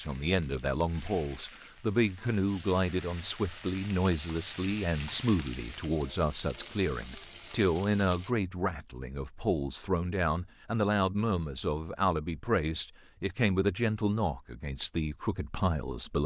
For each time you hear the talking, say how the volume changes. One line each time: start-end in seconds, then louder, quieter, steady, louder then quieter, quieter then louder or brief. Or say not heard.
0.0-16.2 steady.